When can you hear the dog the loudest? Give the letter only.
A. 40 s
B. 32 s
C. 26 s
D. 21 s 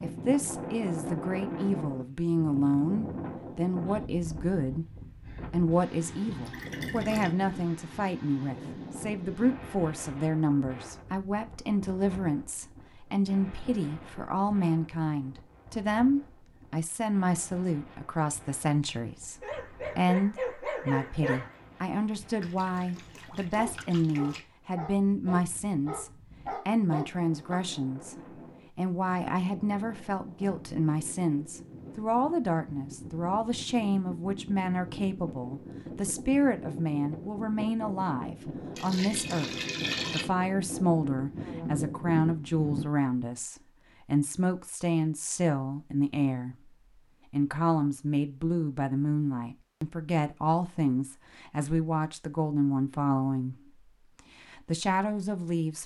D.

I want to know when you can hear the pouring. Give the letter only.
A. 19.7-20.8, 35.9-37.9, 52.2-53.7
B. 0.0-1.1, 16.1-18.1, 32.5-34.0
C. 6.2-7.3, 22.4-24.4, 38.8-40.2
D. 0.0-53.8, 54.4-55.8
C.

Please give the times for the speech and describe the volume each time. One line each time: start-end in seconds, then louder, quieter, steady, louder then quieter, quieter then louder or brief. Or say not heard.
0.0-53.8 steady
54.4-55.8 brief.